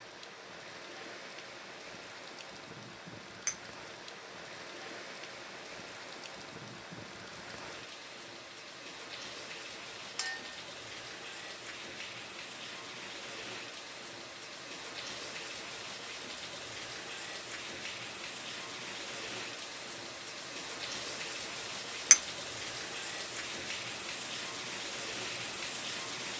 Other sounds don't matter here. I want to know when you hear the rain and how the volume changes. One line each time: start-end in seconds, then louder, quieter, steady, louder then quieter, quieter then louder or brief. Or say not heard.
0.0-26.3 louder.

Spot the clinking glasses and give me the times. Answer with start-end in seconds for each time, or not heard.
10.2-10.6.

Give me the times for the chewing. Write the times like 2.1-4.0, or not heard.
not heard.